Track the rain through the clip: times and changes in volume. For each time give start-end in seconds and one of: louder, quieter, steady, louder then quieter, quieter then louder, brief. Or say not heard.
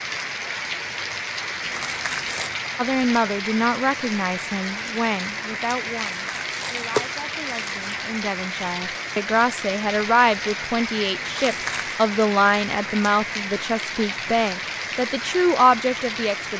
0.0-16.5 steady.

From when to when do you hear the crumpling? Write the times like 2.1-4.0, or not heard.
1.6-2.5, 5.8-8.0, 11.2-12.0.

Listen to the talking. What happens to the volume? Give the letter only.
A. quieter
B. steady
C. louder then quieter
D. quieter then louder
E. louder
D.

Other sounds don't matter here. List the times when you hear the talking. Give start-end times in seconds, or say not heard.
2.8-16.5.